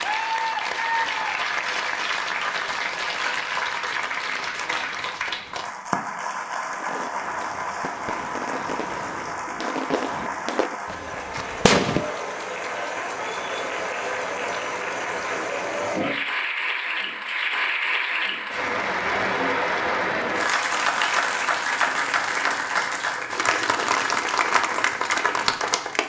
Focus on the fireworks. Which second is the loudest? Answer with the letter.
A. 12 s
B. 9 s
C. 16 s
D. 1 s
A.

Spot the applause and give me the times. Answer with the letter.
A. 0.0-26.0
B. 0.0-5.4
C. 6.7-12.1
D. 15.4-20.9
A.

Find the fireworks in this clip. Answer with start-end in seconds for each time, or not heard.
6.7-12.1.